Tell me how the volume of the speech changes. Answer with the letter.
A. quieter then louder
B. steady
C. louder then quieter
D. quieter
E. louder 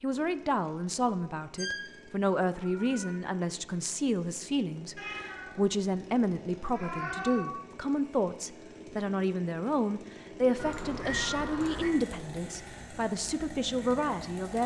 B.